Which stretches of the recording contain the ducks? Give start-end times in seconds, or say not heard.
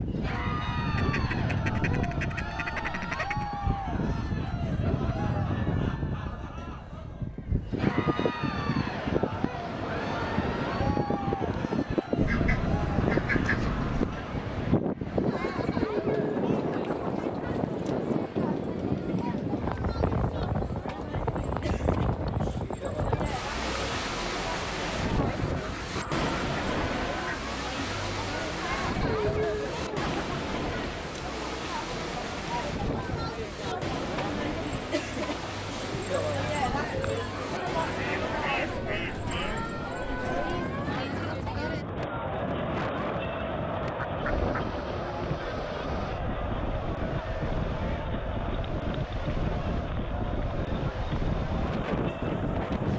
0.8-3.5, 12.2-14.2, 25.4-27.5, 37.9-39.6, 43.1-44.5.